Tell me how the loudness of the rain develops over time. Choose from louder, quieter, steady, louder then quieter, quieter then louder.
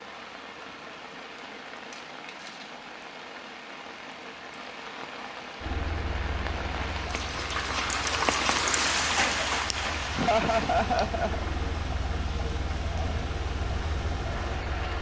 louder then quieter.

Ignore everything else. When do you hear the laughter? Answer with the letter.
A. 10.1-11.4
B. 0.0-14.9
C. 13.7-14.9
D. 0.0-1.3
A.